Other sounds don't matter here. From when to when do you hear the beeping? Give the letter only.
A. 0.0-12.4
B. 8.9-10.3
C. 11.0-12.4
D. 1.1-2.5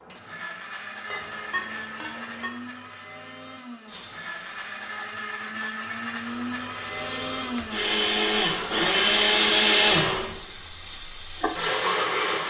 D.